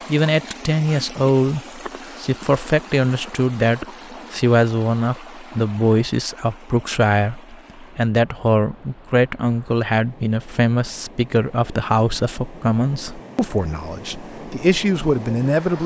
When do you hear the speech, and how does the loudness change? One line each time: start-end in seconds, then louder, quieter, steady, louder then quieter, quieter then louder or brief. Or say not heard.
0.1-15.8 steady.